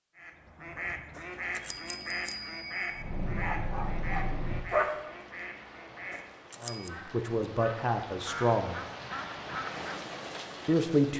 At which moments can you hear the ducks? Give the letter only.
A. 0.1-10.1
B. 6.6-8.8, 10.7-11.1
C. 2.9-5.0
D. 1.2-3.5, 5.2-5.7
A.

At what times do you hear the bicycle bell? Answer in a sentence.
The bicycle bell can be heard from 1.1 to 3.0 s and from 6.1 to 6.9 s.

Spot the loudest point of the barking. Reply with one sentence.
The loudest moment of the barking is at 5 seconds.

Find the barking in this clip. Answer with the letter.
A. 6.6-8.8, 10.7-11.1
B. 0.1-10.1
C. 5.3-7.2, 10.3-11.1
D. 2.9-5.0
D.